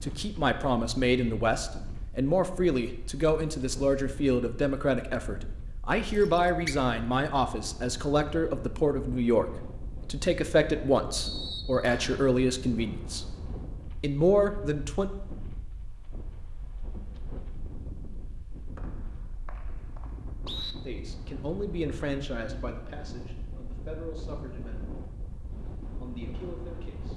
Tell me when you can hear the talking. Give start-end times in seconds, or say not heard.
0.0-13.2, 14.0-15.1, 20.9-24.9, 26.0-27.1.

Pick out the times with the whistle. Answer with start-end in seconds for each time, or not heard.
6.2-6.8, 11.1-12.2, 18.8-20.8.